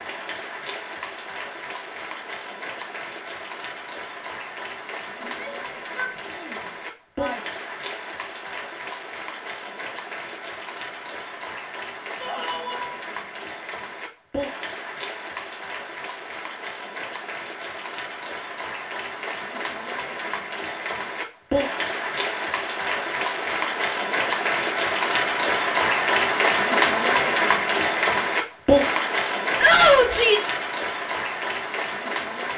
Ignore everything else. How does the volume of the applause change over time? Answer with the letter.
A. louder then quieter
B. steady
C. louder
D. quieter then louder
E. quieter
C.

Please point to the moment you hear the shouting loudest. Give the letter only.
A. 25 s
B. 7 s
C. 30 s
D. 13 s
C.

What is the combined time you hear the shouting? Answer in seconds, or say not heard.
4 s.